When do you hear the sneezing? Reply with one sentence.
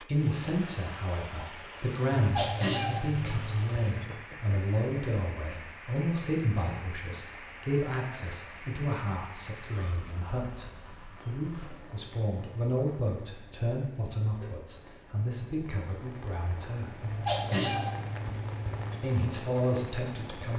The sneezing can be heard from 2.1 to 4.0 s and from 17.0 to 19.0 s.